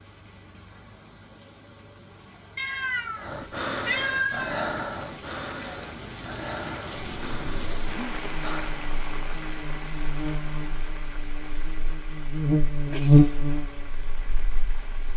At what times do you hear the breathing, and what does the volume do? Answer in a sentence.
The breathing can be heard from 3.1 to 8.8 s, getting quieter.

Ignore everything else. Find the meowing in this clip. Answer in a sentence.
You can hear the meowing from 2.5 to 4.6 s and from 12.9 to 13.3 s.